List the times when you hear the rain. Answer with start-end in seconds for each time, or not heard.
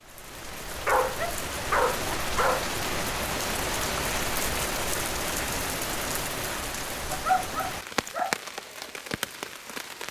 0.0-10.0.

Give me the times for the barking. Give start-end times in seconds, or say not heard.
0.8-2.7, 7.1-8.4.